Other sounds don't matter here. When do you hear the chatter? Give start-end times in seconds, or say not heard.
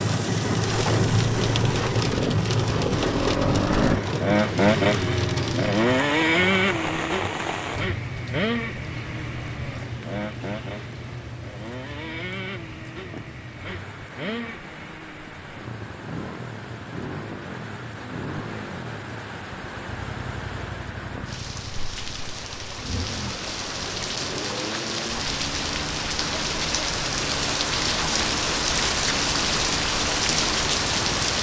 not heard.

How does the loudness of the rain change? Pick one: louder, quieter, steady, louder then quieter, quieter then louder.
quieter then louder.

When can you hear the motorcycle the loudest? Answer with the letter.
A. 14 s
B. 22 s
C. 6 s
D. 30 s
C.